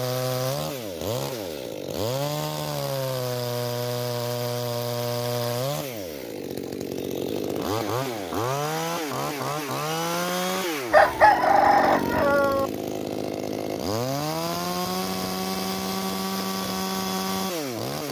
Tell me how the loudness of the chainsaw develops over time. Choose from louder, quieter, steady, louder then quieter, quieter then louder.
steady.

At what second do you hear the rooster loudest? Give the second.
11 s.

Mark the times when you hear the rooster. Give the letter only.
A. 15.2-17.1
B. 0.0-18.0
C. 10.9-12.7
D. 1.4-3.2
C.